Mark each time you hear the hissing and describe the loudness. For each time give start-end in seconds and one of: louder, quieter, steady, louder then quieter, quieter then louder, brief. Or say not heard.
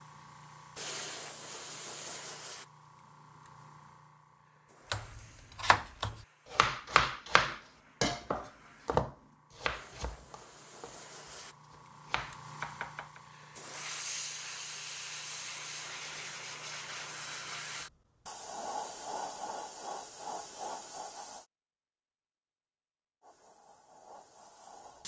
0.0-21.4 quieter then louder
23.2-25.0 brief.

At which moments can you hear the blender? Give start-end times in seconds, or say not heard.
not heard.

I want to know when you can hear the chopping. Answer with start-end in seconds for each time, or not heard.
4.9-10.9, 11.7-13.2.